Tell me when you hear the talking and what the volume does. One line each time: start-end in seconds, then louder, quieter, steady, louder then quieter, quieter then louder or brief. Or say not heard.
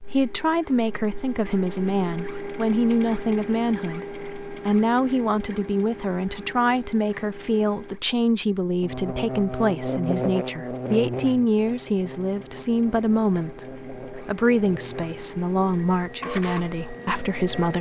0.0-17.7 steady.